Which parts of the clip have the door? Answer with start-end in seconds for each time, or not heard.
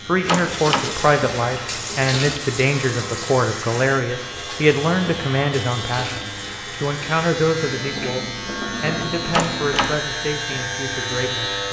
0.2-0.9, 9.3-10.0.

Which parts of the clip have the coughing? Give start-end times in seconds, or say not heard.
not heard.